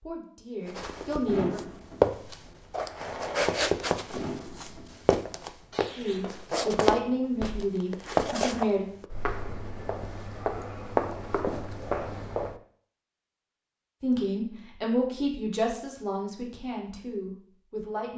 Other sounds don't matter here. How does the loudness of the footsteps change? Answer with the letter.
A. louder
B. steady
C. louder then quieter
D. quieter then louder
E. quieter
B.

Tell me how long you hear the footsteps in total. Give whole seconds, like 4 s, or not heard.
12 s.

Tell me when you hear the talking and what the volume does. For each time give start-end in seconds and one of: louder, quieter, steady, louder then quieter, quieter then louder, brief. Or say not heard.
0.0-1.6 brief
6.0-8.8 brief
14.0-18.1 quieter.